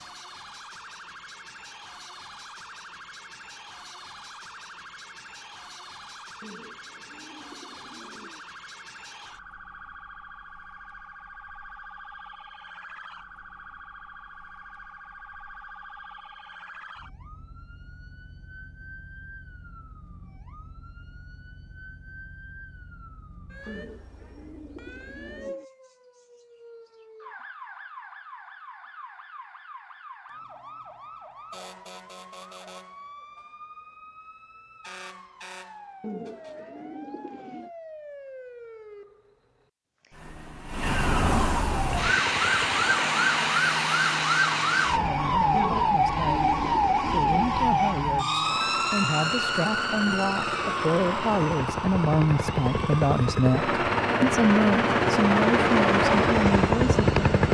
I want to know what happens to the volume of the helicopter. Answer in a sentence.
The loudness of the helicopter goes up.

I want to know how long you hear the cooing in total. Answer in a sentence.
You can hear the cooing for 8 seconds altogether.